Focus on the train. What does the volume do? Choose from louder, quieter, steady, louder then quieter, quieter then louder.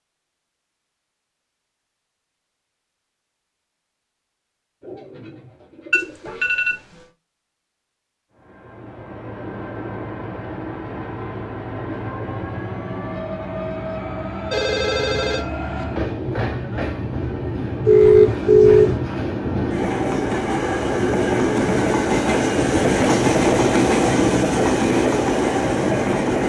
louder.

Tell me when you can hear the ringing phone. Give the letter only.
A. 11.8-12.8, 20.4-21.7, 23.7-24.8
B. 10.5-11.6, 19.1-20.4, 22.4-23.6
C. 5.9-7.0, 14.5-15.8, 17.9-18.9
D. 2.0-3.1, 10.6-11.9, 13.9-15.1
C.